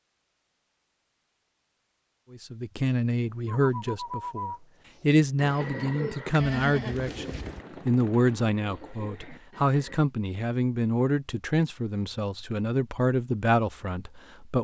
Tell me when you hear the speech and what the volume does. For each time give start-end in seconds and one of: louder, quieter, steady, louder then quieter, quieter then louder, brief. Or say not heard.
2.3-14.5 steady.